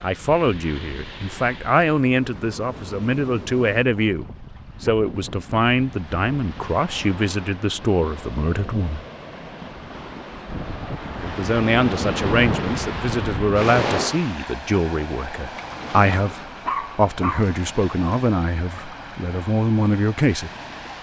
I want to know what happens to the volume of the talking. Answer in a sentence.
The volume of the talking stays about the same.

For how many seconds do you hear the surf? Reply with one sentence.
The surf can be heard for 21 seconds in total.